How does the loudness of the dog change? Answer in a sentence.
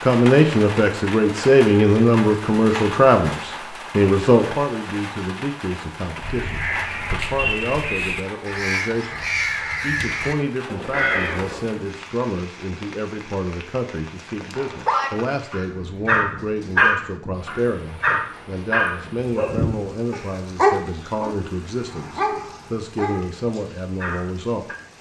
The volume of the dog goes down.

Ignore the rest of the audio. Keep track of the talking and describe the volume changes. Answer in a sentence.
The volume of the talking goes down.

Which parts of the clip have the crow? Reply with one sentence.
The crow can be heard from 6.2 to 11.8 s.